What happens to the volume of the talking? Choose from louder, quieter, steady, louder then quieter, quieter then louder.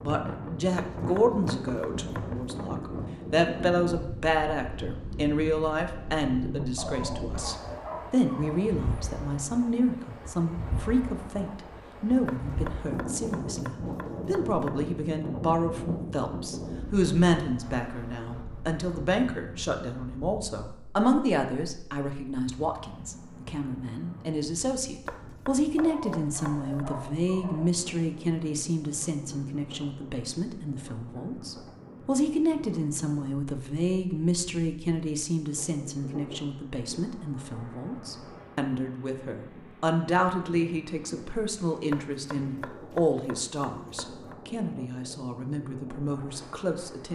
steady.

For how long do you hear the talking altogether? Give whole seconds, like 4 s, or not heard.
47 s.